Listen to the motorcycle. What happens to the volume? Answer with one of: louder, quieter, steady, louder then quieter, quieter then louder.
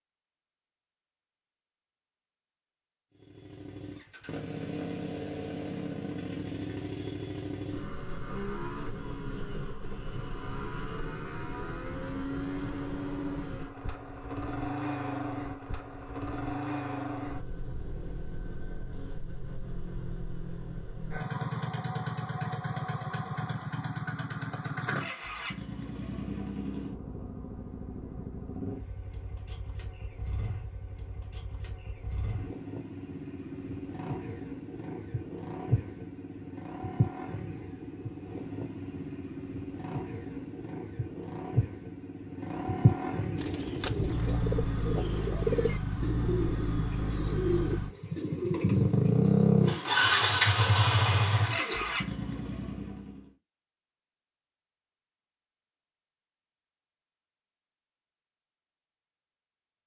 louder.